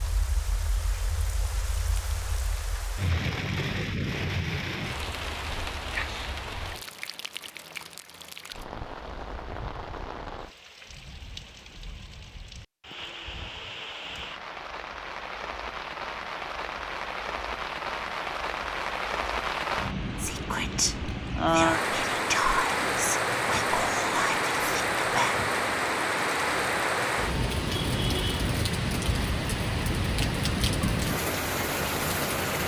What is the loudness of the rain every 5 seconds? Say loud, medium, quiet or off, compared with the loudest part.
medium, medium, quiet, medium, loud, loud, loud.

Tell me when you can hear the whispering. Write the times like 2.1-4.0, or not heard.
20.1-25.4.